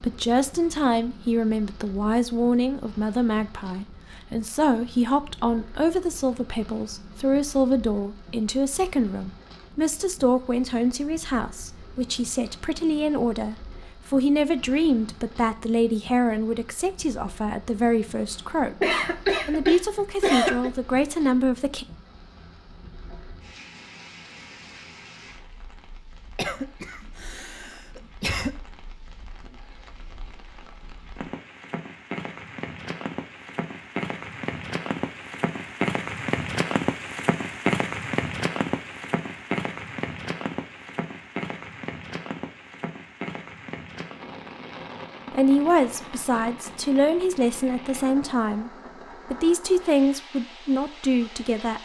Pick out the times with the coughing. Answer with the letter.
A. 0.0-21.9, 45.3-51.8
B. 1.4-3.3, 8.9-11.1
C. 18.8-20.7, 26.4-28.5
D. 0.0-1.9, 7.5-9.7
C.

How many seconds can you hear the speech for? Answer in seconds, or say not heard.
28 s.